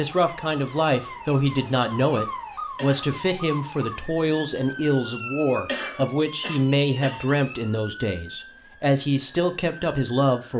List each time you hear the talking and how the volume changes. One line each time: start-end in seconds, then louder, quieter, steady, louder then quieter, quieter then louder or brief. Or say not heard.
0.0-10.5 steady.